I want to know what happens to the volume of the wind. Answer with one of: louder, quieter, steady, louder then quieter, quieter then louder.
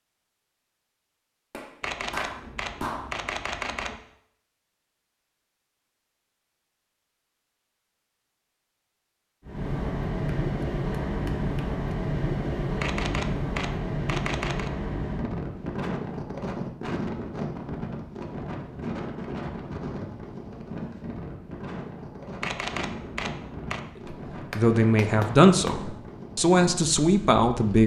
quieter.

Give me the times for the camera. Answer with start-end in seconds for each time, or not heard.
1.8-4.0, 12.8-14.7, 22.4-23.8.